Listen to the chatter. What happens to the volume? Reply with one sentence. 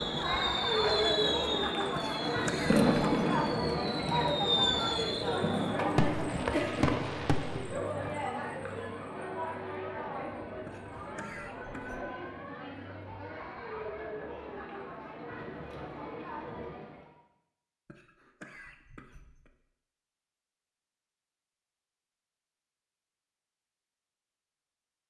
The volume of the chatter goes down.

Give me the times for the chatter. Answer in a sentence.
You can hear the chatter from 0.0 to 17.1 s.